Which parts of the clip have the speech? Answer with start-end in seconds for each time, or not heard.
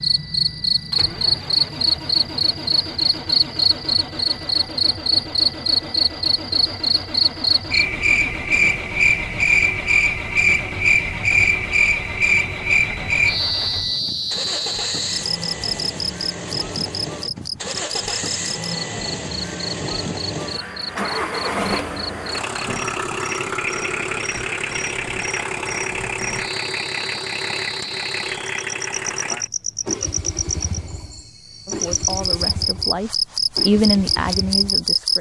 31.6-35.1.